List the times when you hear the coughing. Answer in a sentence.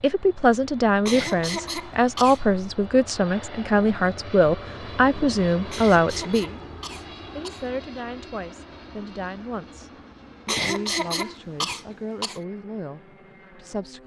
The coughing can be heard from 1.1 to 2.4 s, from 5.7 to 7.7 s and from 10.4 to 12.4 s.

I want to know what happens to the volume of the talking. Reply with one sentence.
The loudness of the talking goes down.